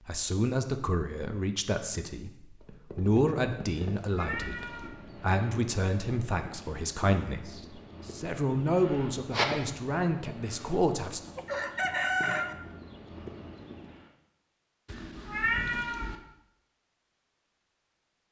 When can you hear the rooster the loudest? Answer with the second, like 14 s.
12 s.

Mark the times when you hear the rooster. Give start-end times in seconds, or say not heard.
10.6-12.6.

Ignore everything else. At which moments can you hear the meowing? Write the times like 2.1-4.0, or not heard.
3.8-4.9, 14.8-16.1.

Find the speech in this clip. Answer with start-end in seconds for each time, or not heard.
0.1-11.2.